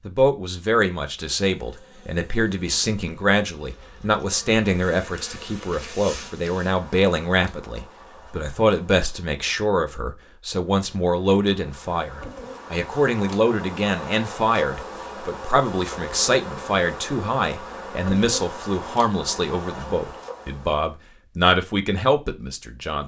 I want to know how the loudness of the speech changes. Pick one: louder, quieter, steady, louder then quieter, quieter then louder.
steady.